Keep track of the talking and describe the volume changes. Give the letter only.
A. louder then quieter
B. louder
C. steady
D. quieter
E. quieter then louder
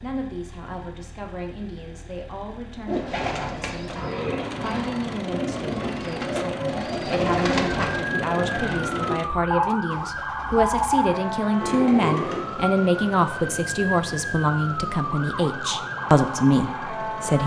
B.